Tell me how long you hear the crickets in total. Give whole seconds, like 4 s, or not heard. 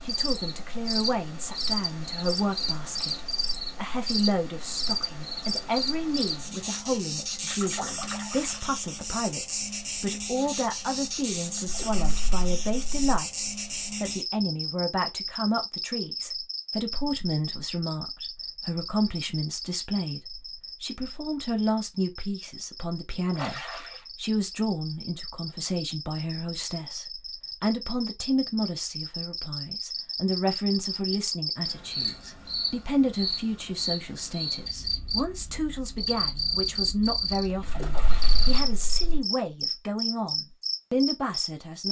42 s.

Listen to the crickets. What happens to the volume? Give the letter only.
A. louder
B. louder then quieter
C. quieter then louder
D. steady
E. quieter
C.